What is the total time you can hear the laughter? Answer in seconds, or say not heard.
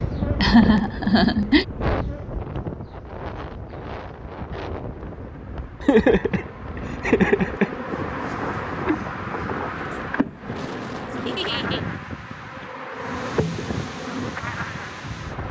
4 s.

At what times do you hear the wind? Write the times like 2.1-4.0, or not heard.
0.0-15.4.